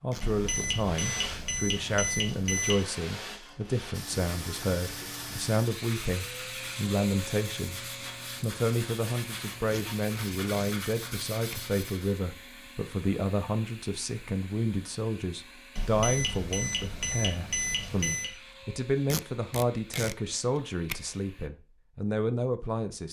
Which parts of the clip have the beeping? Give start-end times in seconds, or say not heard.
0.2-2.8, 15.8-18.4.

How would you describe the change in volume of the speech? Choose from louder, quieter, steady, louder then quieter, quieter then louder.
steady.